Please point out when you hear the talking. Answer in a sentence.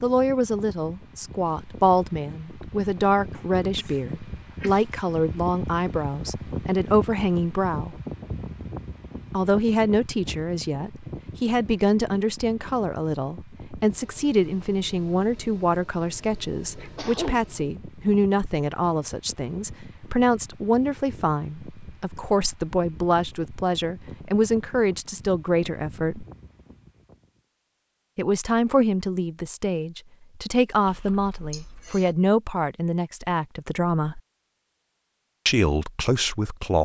You can hear the talking from 0.0 to 8.0 s, from 9.3 to 26.2 s, from 28.1 to 34.2 s and from 35.5 to 36.7 s.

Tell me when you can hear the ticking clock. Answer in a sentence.
You can't hear the ticking clock here.